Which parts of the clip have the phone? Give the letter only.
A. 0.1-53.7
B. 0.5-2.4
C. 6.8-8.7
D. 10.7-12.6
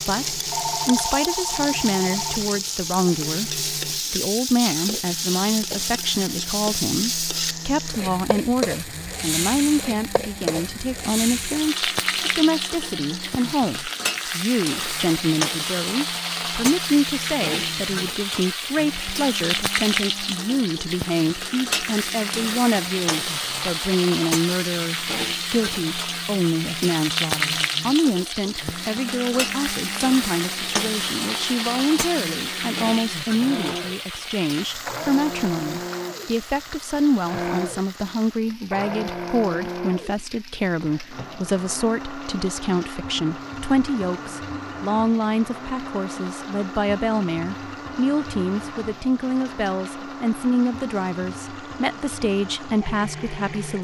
B.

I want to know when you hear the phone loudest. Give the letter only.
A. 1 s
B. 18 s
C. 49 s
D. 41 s
A.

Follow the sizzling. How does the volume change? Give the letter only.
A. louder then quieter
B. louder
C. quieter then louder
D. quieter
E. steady
D.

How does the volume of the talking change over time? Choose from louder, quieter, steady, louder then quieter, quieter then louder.
steady.